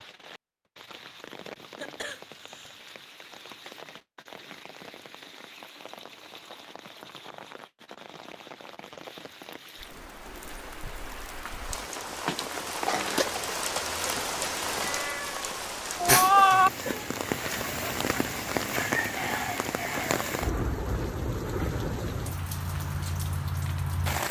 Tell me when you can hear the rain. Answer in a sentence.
You can hear the rain from 0.0 to 24.2 s.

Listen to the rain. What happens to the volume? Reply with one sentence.
The volume of the rain goes up.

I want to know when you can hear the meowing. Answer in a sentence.
You can hear the meowing from 14.8 to 16.7 s.